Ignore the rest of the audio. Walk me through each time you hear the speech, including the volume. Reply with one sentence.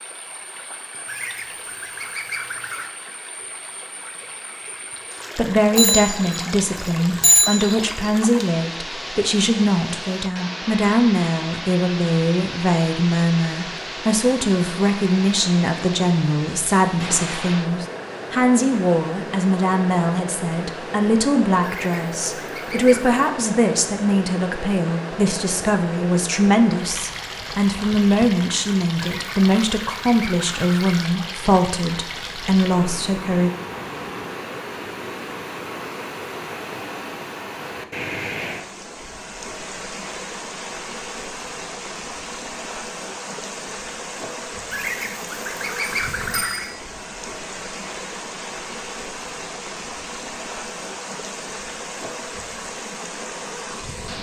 The speech can be heard from 5.3 to 33.5 s, at a steady volume.